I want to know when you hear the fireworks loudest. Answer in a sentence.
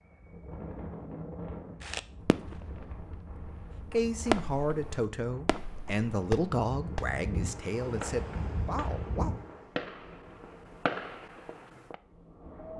The volume of the fireworks peaks at 4 seconds.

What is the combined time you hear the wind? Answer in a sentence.
The wind can be heard for 13 seconds in total.